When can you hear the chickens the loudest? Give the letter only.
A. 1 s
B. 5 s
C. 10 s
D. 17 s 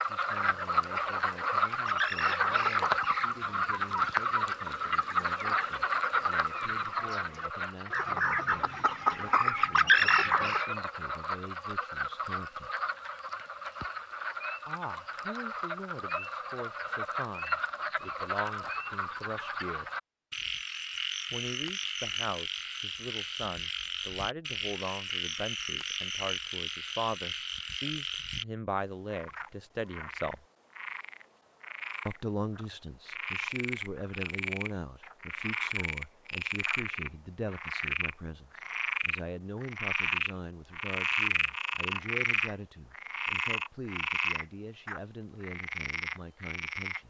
C.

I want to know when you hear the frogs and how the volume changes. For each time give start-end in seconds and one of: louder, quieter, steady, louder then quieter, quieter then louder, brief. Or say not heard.
0.0-28.4 quieter
29.1-47.0 louder.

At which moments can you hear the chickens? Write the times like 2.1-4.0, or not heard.
0.2-10.7.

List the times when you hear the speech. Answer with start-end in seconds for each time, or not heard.
0.1-12.7, 14.7-19.9, 21.3-30.4, 32.0-47.0.